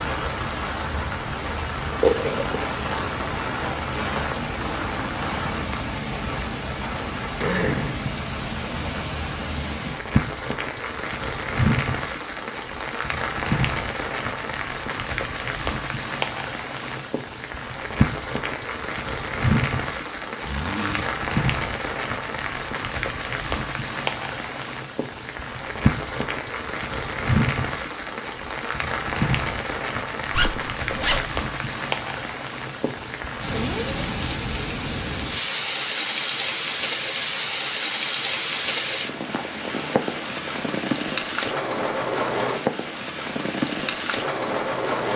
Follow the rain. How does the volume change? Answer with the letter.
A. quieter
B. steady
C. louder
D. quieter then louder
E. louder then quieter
B.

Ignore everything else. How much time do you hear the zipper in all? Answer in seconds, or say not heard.
2 s.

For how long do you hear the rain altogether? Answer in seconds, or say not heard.
45 s.